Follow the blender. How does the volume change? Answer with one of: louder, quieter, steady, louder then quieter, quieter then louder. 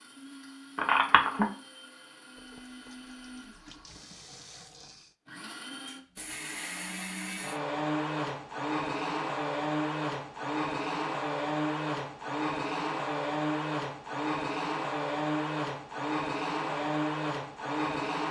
louder.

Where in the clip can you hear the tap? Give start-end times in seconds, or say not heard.
2.2-5.2.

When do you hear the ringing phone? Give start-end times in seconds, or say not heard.
0.8-1.4.